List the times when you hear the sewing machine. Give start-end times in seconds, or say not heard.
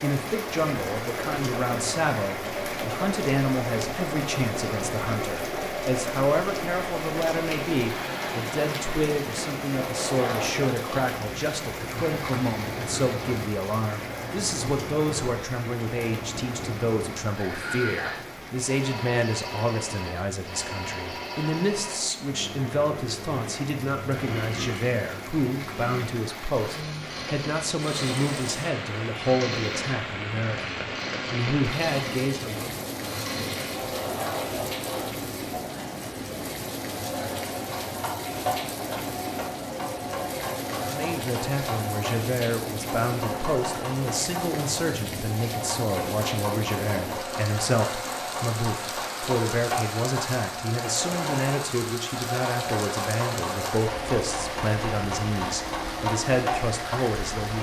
0.2-57.5.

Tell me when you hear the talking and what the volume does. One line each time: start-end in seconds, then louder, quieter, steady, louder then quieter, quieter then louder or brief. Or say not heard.
0.0-32.9 steady
40.8-57.5 steady.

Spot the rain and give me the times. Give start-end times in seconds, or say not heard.
0.0-57.5.